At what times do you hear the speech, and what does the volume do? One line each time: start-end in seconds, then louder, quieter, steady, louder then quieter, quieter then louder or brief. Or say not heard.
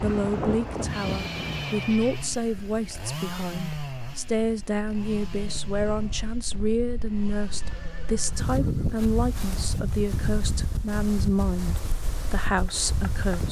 0.0-13.4 steady.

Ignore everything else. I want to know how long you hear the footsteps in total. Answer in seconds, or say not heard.
not heard.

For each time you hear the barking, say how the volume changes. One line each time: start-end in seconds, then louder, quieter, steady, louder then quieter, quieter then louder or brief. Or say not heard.
not heard.